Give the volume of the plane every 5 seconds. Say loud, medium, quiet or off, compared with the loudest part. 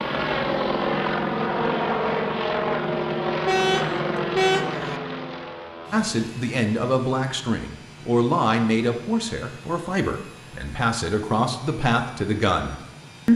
loud, quiet, quiet.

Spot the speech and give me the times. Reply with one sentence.
The speech can be heard from 5.9 to 13.3 s.